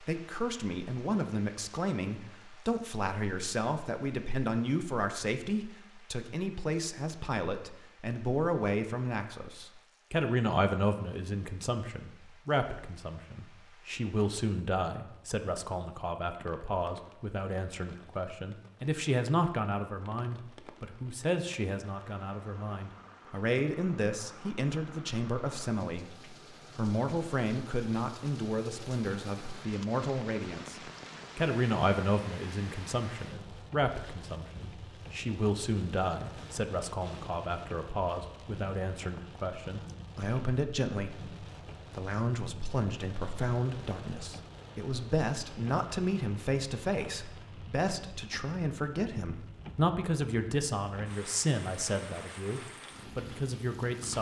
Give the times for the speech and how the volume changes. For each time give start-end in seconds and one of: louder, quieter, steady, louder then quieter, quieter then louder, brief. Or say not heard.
0.0-54.1 steady.